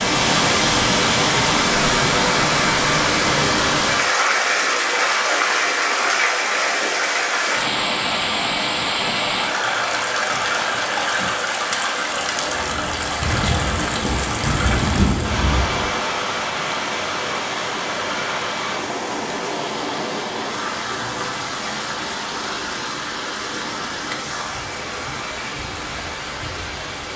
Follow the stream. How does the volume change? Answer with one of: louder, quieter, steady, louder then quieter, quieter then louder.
quieter.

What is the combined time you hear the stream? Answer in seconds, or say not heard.
27 s.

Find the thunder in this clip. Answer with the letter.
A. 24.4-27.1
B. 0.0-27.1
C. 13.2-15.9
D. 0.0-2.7
C.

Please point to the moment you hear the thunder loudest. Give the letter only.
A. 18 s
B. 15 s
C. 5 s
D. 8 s
B.